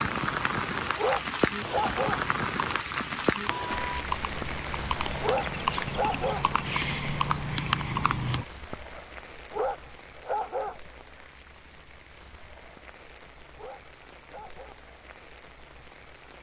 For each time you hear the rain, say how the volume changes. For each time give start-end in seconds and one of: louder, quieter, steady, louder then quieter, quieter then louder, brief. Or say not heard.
0.0-16.3 quieter.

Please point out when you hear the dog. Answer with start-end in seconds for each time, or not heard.
0.1-2.2, 4.4-6.5, 8.7-10.8, 12.8-14.8.